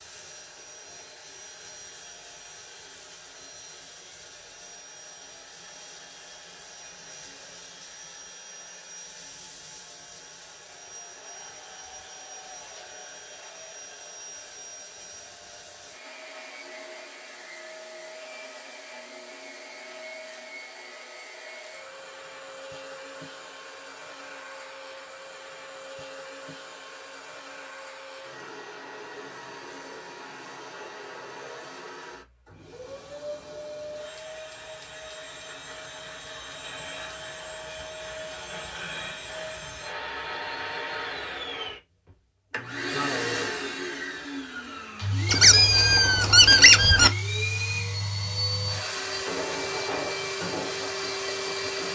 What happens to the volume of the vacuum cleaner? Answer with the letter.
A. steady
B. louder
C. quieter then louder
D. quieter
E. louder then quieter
B.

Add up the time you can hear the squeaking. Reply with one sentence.
You can hear the squeaking for 2 seconds altogether.